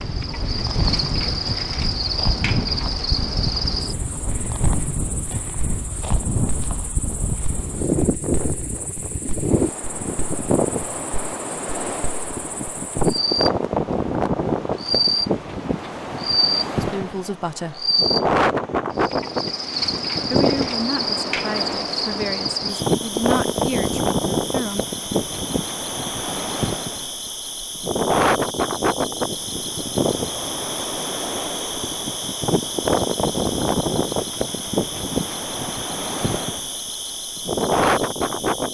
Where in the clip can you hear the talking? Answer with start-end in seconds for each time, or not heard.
16.8-17.9, 20.3-24.9.